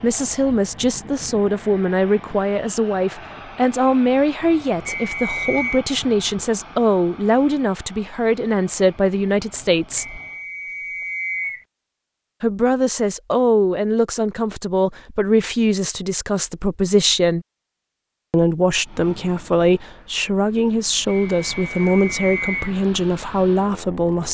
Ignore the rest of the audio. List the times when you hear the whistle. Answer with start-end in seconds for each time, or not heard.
4.8-5.8, 9.9-11.7, 21.1-22.8.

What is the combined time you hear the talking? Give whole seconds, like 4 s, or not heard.
21 s.